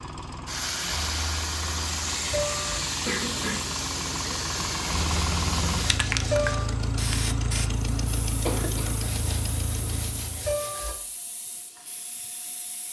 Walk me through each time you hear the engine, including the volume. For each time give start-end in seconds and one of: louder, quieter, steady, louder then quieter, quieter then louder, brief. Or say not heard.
0.0-10.6 louder.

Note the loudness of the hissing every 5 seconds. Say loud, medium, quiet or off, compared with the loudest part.
loud, loud, quiet.